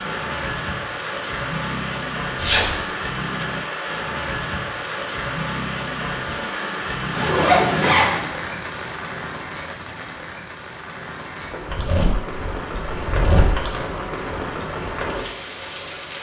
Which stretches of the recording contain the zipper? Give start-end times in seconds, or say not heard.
2.4-2.8, 7.2-8.2, 11.7-13.7.